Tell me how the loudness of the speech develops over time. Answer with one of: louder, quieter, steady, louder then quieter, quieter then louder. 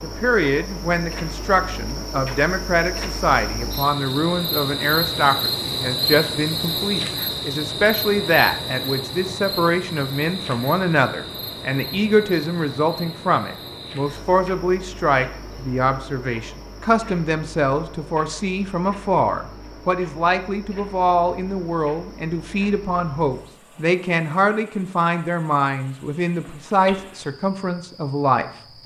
steady.